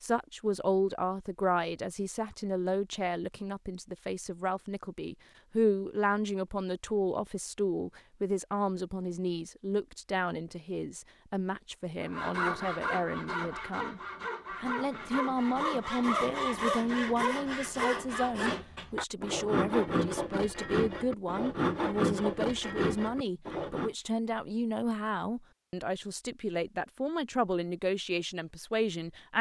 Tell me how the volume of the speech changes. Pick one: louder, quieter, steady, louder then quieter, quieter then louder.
steady.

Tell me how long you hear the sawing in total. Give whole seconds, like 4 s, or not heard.
12 s.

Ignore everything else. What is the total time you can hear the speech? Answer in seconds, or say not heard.
29 s.